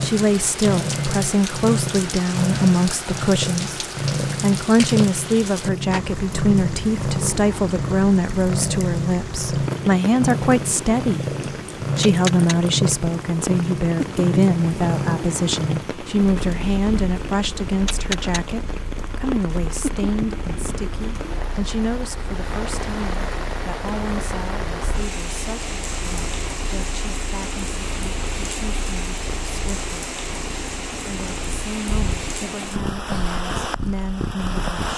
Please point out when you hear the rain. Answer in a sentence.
You can hear the rain from 0.0 to 34.9 s.